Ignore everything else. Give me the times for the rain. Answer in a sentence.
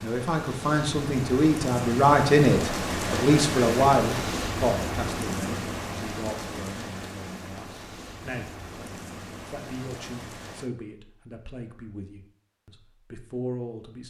The rain can be heard from 0.0 to 10.7 s.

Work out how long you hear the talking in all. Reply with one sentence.
The talking can be heard for 14 seconds in total.